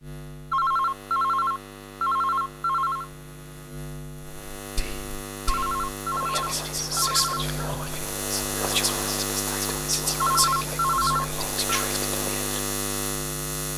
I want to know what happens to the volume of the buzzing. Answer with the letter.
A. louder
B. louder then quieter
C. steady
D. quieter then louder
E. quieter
A.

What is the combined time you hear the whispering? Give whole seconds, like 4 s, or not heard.
8 s.